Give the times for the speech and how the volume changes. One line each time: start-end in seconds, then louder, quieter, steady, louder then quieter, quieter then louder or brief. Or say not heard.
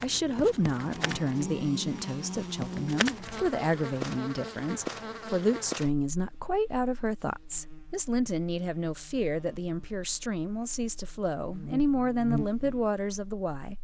0.0-13.7 steady.